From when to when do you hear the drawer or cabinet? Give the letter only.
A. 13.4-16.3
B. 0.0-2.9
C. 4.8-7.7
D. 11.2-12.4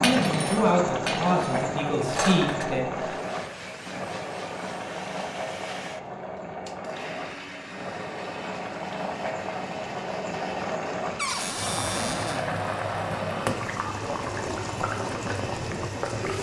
D.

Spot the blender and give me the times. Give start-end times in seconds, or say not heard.
2.9-16.3.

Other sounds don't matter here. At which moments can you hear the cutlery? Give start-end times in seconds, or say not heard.
0.0-2.6.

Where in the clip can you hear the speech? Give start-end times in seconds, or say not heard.
0.0-2.9.